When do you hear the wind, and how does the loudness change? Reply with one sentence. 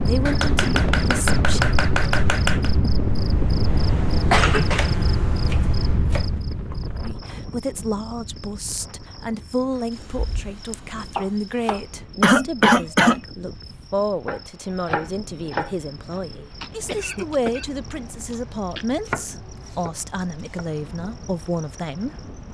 The wind can be heard from 0.0 to 22.4 s, getting quieter.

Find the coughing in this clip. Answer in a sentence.
The coughing can be heard from 4.3 to 4.9 s, from 12.2 to 13.2 s and from 16.6 to 19.1 s.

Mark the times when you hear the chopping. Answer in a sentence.
You can hear the chopping from 0.2 to 2.7 s, from 4.8 to 6.8 s, from 9.9 to 11.8 s, from 14.2 to 16.2 s and from 19.1 to 19.9 s.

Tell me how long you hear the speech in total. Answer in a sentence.
The speech can be heard for 17 seconds in total.